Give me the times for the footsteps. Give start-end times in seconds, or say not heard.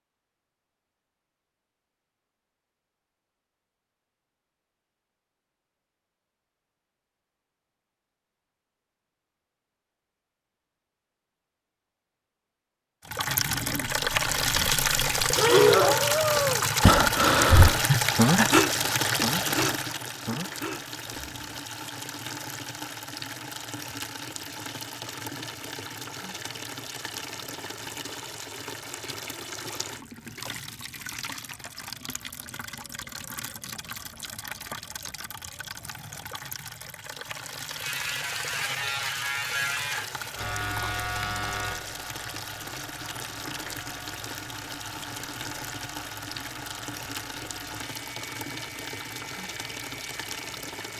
not heard.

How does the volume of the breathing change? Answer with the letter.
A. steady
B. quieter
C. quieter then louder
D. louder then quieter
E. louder
D.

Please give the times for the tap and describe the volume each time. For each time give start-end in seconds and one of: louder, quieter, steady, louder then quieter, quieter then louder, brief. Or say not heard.
13.1-50.9 quieter.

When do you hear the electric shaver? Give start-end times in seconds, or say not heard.
37.7-50.9.